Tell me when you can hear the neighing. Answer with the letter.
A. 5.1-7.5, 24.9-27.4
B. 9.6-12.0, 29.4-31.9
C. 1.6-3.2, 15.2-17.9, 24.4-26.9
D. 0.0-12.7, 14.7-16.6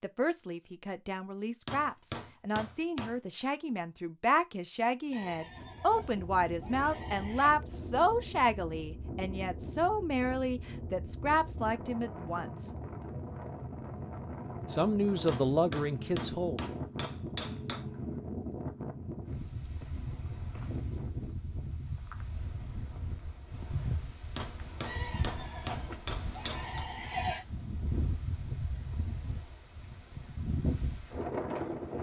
A.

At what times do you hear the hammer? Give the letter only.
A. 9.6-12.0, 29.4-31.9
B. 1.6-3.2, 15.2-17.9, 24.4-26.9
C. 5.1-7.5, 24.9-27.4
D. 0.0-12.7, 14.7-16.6
B.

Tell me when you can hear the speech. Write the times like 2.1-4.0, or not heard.
0.0-12.7, 14.7-16.6.